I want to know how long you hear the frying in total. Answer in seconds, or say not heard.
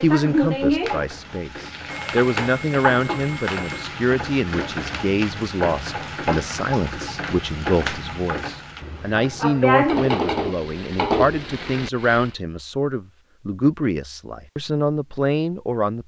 12 s.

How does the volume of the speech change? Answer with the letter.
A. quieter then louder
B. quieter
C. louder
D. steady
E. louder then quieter
D.